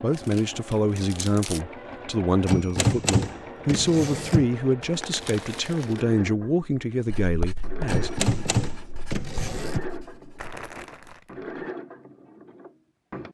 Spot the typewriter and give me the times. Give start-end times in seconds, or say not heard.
2.5-4.5, 7.8-9.8.